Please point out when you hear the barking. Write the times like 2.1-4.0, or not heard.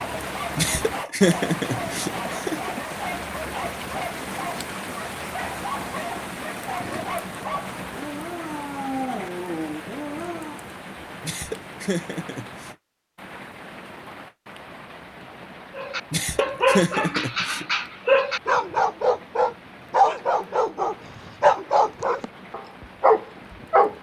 0.0-10.6, 15.8-23.9.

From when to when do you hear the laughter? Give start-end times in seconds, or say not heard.
0.6-2.8, 11.2-12.7, 16.1-17.6.